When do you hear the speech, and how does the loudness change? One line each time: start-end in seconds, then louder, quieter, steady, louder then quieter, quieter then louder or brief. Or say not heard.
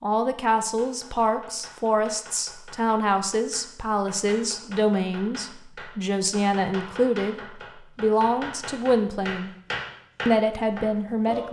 0.0-9.5 steady
10.2-11.4 brief.